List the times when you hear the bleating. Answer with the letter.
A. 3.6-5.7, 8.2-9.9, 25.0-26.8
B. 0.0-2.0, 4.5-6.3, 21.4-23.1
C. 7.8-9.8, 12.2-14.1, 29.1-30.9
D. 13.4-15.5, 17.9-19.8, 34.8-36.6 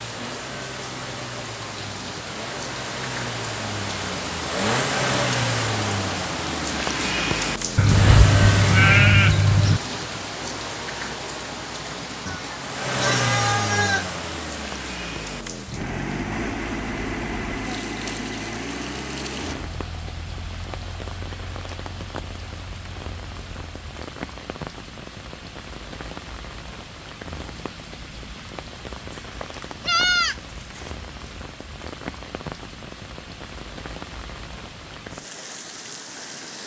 C.